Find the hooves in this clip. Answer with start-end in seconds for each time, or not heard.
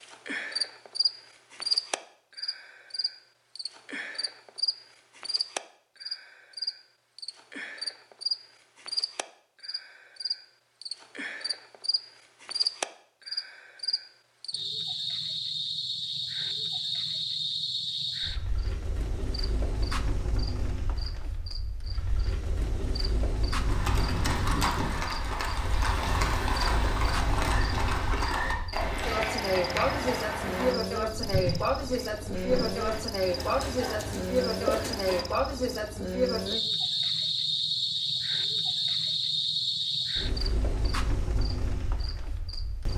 23.6-35.7.